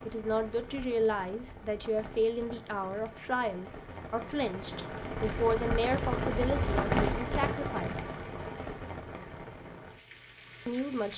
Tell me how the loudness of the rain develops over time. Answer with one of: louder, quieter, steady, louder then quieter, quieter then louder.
louder then quieter.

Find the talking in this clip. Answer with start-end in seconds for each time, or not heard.
0.0-8.1, 10.7-11.1.